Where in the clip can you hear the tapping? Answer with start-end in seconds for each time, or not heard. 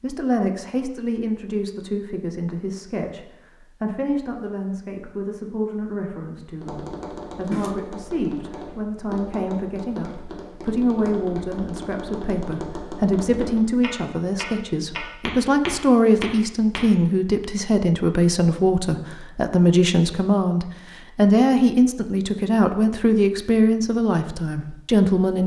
6.6-16.9.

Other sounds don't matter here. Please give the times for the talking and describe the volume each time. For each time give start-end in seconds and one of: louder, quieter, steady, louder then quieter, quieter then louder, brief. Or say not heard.
0.0-25.4 louder.